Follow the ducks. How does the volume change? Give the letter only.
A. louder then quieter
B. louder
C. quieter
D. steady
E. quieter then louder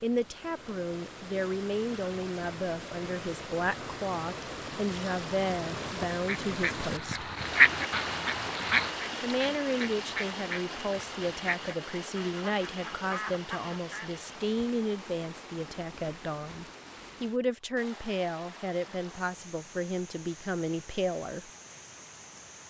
C.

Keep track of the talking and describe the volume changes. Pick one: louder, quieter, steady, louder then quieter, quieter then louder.
steady.